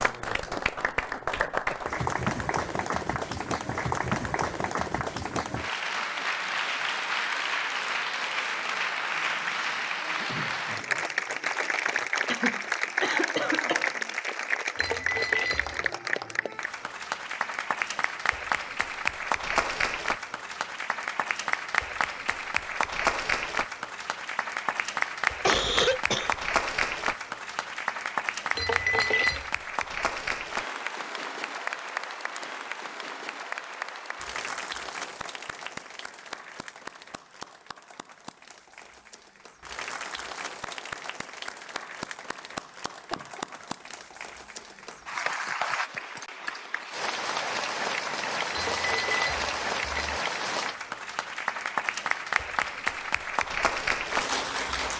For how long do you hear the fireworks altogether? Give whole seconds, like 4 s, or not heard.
not heard.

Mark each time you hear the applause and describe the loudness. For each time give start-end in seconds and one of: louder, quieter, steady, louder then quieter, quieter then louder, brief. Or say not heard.
0.0-54.9 quieter then louder.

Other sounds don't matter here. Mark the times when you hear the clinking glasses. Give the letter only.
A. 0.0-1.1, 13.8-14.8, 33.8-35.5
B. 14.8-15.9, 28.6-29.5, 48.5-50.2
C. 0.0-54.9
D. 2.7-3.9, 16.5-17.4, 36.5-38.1
B.